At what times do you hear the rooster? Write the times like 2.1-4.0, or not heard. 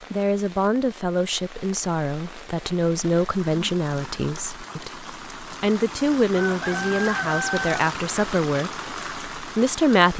6.3-7.8.